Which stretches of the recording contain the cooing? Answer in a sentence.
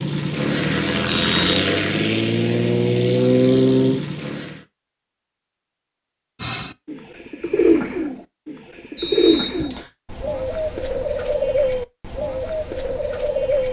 You can hear the cooing from 6.4 to 13.6 s.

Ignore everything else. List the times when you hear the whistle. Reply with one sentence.
The whistle can be heard from 1.1 to 1.5 s and from 8.9 to 9.9 s.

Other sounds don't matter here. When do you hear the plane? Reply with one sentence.
You can hear the plane from 0.0 to 4.6 s.